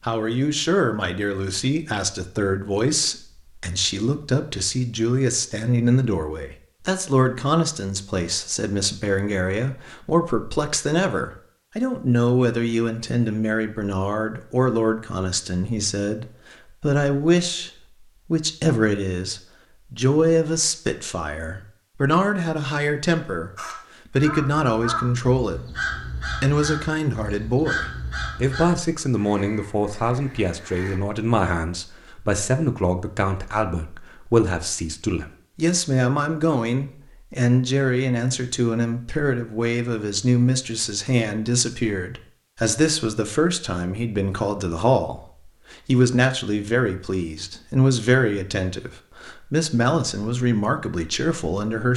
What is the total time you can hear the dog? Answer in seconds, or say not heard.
not heard.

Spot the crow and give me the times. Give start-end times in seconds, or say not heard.
23.6-31.0.